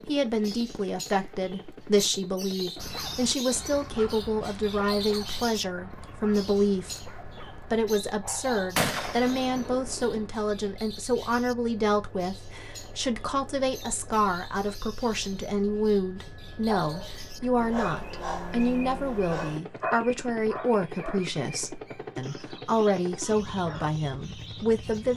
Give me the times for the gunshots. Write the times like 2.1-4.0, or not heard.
8.8-10.3.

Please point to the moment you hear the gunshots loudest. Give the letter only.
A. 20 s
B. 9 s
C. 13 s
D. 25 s
B.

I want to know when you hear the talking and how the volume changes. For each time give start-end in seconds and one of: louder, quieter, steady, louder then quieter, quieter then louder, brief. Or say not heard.
0.1-25.1 steady.